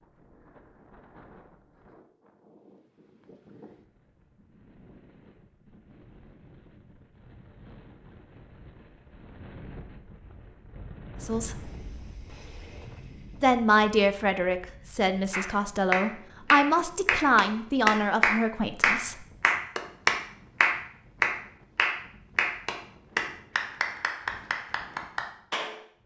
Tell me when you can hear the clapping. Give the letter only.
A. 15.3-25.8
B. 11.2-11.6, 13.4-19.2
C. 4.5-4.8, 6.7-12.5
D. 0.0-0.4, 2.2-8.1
A.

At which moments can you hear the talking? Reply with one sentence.
The talking can be heard from 11.2 to 11.6 s and from 13.4 to 19.2 s.